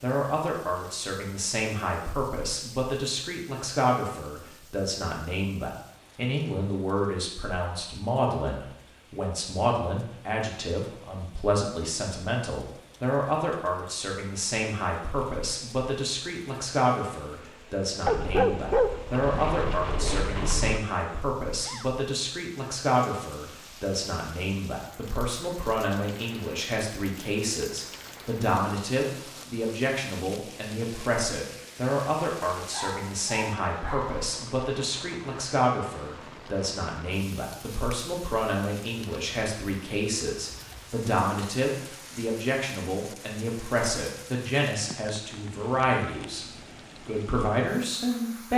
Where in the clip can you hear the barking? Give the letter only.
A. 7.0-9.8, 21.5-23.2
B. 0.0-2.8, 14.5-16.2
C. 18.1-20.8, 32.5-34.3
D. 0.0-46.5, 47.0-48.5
C.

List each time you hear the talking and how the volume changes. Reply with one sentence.
You can hear the talking from 0.0 to 46.5 s, at a steady volume; and briefly from 47.0 to 48.5 s.